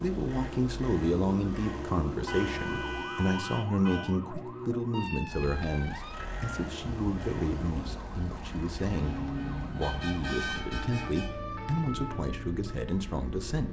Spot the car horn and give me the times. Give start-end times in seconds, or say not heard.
2.2-4.2, 8.8-11.3.